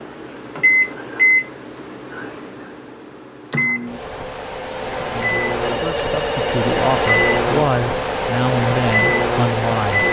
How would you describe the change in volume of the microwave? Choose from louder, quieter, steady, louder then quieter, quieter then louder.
quieter then louder.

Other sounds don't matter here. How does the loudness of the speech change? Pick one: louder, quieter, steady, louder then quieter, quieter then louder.
louder.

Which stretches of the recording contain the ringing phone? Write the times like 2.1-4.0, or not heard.
5.6-7.4.